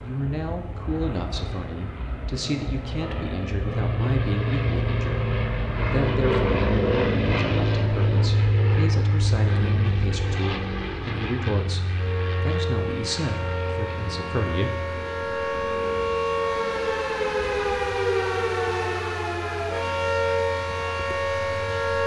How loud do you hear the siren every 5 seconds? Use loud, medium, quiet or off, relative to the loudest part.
off, off, medium, loud, loud.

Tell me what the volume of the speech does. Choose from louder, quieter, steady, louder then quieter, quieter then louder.
steady.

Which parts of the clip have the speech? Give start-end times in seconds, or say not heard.
0.0-14.9.